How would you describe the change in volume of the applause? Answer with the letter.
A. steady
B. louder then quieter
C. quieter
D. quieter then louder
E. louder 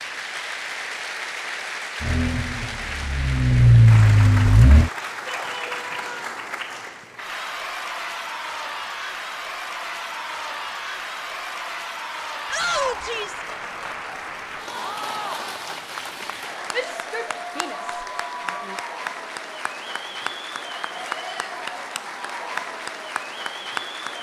A.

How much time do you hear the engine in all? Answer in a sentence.
You can hear the engine for 3 seconds altogether.